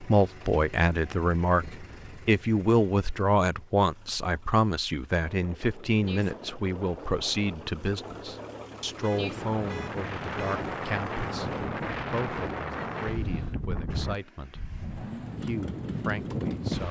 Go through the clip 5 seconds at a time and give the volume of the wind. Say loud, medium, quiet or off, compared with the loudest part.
off, medium, loud, loud.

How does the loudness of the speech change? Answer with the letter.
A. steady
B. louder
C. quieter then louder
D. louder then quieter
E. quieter
E.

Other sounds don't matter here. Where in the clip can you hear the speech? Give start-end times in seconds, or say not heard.
0.0-16.8.